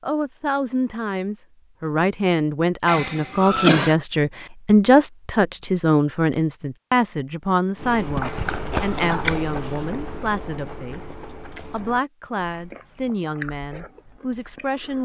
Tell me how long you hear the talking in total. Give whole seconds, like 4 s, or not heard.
15 s.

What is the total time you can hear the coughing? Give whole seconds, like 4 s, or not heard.
2 s.